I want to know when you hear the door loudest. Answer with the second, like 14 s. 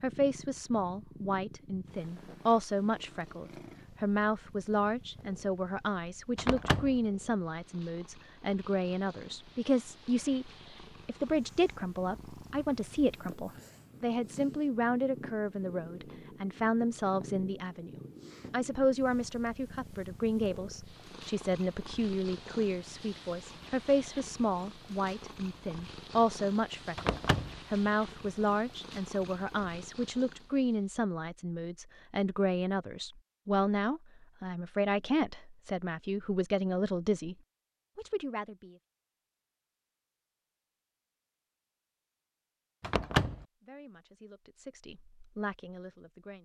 43 s.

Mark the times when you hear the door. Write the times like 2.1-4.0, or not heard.
6.3-7.0, 26.9-27.6, 42.8-43.5.